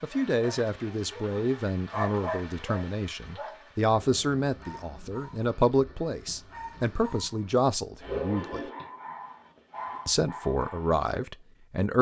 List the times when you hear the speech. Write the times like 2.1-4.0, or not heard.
0.0-8.6, 10.1-11.9.